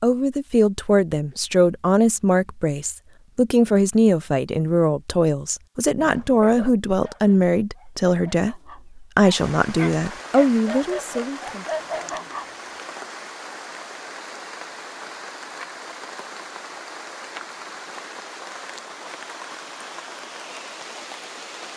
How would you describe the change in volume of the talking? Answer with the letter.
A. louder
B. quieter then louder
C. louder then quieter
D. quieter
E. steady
E.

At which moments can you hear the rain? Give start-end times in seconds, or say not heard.
9.3-21.7.